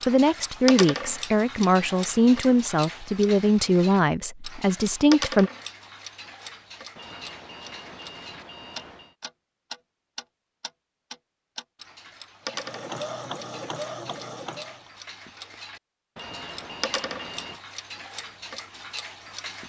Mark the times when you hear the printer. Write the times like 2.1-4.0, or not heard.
12.4-14.9.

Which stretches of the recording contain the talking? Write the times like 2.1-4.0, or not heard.
0.1-5.5.